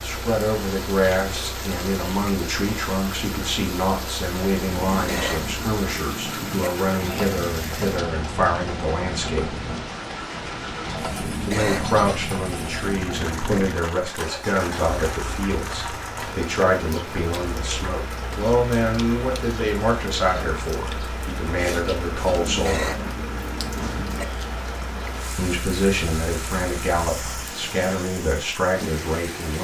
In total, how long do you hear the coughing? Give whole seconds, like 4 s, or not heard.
5 s.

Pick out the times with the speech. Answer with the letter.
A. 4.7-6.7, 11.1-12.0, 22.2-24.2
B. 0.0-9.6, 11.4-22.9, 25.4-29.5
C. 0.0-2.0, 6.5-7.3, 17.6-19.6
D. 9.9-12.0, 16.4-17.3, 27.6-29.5
B.